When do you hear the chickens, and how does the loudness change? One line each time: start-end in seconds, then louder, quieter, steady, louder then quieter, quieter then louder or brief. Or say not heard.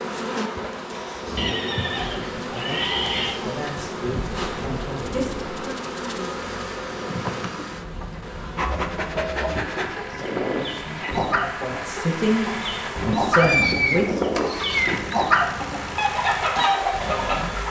8.1-17.6 louder.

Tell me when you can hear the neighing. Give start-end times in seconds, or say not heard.
1.4-3.4, 13.1-15.1.